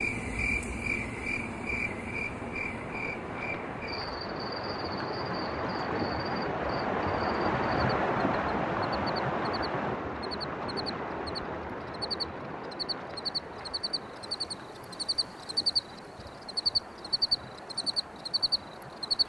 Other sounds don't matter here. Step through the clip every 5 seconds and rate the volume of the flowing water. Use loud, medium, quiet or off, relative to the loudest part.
medium, loud, medium, quiet.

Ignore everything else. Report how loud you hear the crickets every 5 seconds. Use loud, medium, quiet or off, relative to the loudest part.
medium, quiet, medium, loud.